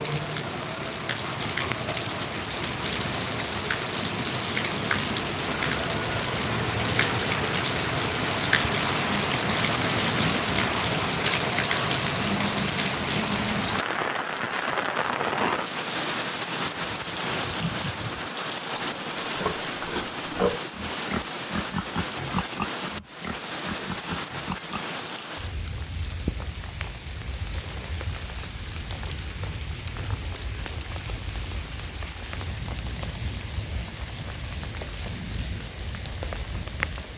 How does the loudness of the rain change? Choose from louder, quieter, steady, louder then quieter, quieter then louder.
quieter.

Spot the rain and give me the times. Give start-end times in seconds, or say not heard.
0.0-37.1.